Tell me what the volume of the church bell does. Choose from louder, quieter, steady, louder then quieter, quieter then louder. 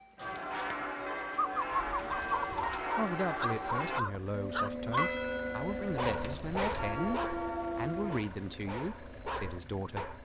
steady.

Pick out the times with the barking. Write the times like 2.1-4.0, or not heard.
2.2-10.1.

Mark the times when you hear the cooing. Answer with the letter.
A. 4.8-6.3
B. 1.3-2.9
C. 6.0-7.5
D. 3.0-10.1
B.